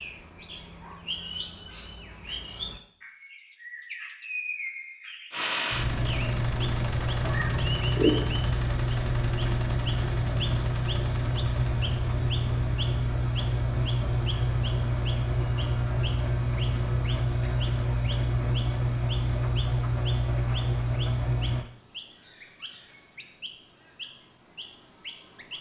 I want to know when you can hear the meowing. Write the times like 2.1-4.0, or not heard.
7.3-8.1.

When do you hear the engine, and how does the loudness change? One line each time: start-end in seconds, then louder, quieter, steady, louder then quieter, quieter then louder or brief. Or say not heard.
5.3-21.6 steady.